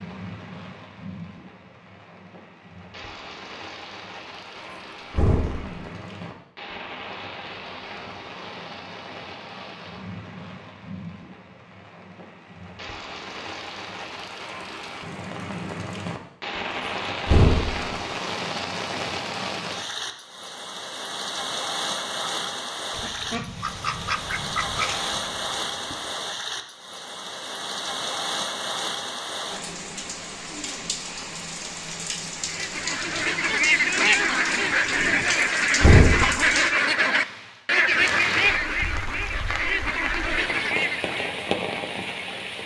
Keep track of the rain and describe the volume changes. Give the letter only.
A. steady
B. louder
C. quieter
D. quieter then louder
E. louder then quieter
B.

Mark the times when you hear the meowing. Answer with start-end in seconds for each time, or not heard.
not heard.